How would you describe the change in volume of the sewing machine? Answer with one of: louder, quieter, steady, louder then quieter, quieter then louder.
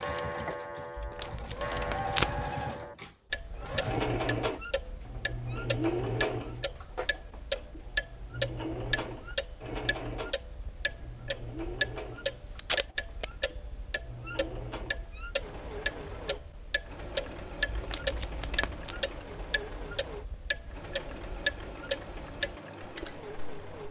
quieter.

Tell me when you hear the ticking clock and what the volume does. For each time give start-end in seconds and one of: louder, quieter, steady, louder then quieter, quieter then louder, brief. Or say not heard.
0.0-23.8 steady.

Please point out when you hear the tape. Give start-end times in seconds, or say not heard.
0.9-2.5, 12.6-13.2, 17.6-18.9.